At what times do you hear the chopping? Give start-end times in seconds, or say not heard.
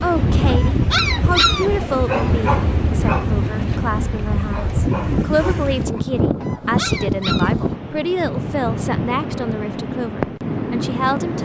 not heard.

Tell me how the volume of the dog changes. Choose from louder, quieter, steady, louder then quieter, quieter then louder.
quieter then louder.